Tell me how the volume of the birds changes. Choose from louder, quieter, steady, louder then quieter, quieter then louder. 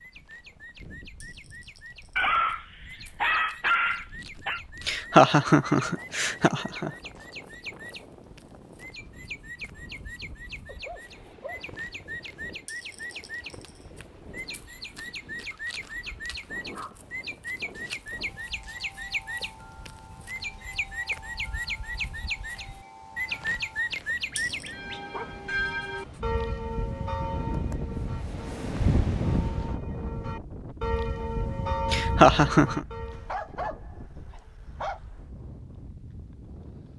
louder.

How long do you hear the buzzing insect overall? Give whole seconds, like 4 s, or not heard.
not heard.